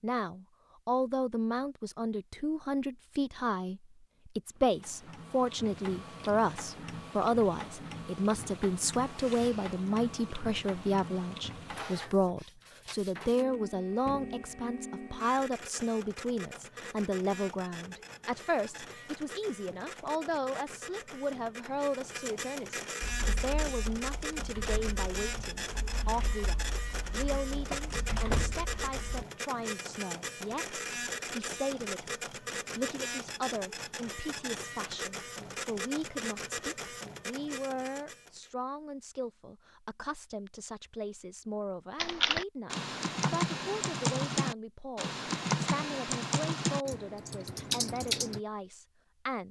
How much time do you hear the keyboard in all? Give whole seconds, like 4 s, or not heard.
13 s.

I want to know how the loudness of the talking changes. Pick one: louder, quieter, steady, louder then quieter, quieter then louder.
quieter.